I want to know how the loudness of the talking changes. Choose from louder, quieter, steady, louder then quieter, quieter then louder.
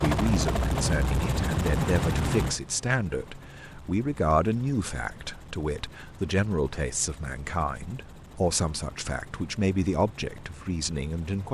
steady.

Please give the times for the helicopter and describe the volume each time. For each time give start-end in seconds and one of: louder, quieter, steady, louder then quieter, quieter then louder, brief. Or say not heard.
0.0-11.4 quieter.